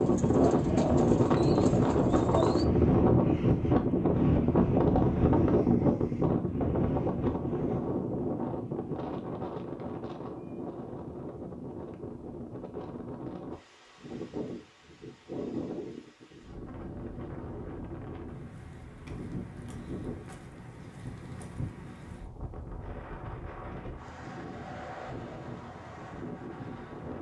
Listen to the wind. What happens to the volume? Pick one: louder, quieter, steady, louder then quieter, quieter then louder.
quieter.